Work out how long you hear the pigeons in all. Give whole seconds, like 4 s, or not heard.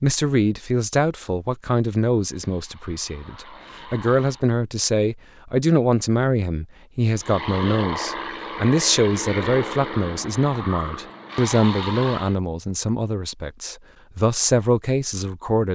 not heard.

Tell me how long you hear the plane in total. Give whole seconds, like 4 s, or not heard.
7 s.